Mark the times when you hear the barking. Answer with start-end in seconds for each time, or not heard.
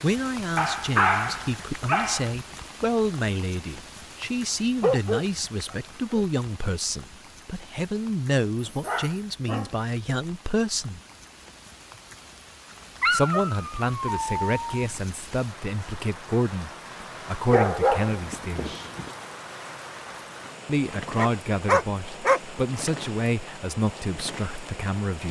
0.6-2.3, 4.8-6.2, 8.6-9.8, 13.0-14.8, 17.5-19.1, 21.1-22.9.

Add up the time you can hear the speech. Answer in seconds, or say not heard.
21 s.